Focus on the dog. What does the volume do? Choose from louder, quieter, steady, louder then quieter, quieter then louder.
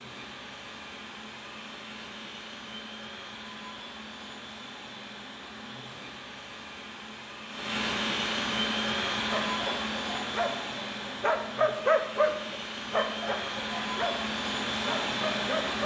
louder then quieter.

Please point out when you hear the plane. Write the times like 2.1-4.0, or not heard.
0.0-15.8.